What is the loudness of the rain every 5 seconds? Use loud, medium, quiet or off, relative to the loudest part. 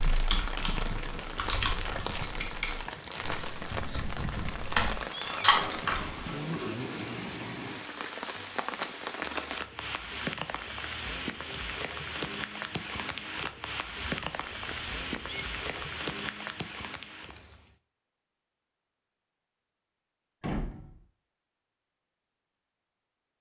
loud, loud, loud, loud, off.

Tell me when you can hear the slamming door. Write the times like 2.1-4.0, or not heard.
5.5-5.9, 20.4-21.0.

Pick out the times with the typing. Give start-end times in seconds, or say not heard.
0.0-6.8.